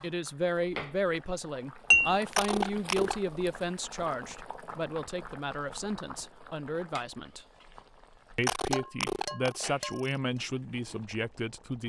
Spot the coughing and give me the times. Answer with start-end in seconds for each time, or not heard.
2.3-3.2, 8.4-10.1.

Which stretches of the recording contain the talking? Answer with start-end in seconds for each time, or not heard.
0.0-7.5, 8.3-11.8.